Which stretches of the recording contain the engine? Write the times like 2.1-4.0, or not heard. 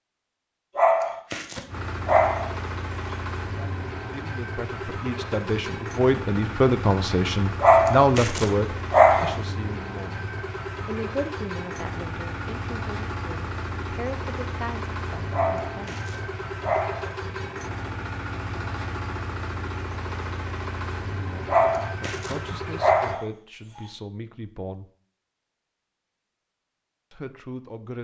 1.6-23.2.